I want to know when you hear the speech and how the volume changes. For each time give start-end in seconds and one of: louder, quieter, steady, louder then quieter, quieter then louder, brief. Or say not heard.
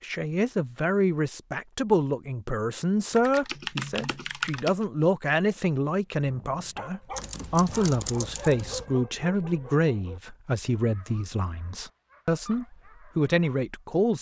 0.0-14.1 steady.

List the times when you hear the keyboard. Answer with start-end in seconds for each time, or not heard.
3.1-4.8, 7.1-8.8.